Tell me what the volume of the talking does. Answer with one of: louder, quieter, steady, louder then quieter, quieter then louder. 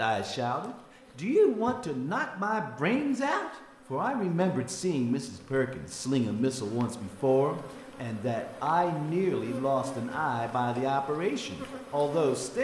steady.